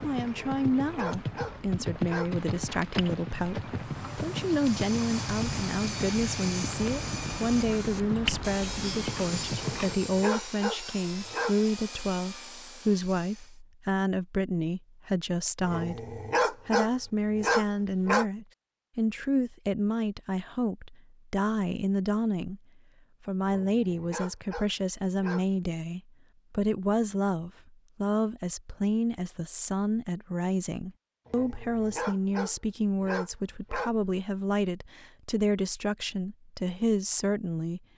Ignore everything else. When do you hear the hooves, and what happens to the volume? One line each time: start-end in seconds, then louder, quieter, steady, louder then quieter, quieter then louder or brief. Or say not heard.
0.0-9.9 steady.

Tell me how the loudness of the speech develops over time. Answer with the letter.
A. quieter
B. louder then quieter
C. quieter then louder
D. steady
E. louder
D.